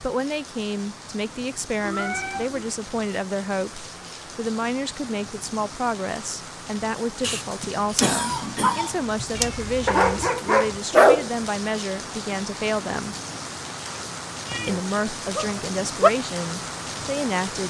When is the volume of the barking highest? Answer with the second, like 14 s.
11 s.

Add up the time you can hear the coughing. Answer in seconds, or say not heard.
2 s.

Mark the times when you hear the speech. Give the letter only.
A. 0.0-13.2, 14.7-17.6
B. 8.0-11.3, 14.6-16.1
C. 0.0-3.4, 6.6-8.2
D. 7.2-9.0
A.